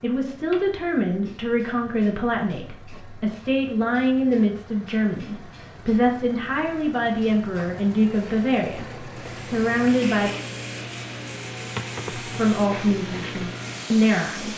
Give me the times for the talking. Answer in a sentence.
The talking can be heard from 0.0 to 10.3 s and from 12.2 to 14.5 s.